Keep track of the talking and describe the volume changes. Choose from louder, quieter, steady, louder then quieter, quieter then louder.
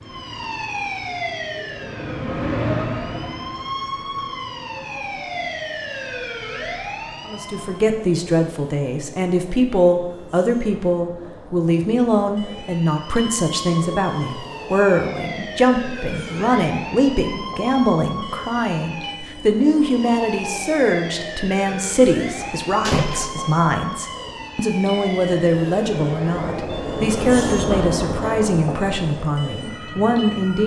steady.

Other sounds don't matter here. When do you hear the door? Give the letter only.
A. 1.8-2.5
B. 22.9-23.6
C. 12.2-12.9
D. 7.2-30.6
B.